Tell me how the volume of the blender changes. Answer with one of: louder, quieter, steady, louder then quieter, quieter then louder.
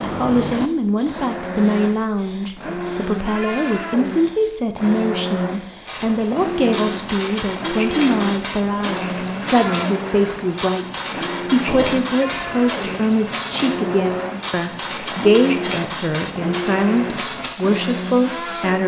steady.